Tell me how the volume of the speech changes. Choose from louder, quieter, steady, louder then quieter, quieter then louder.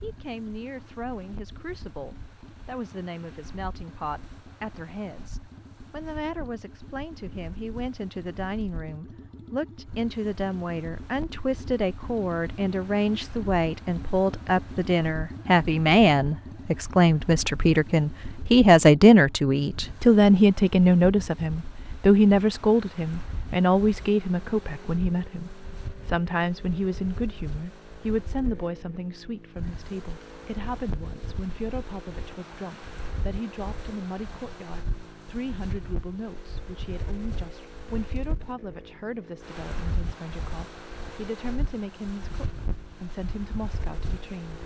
louder then quieter.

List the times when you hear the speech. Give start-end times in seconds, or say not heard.
0.0-44.6.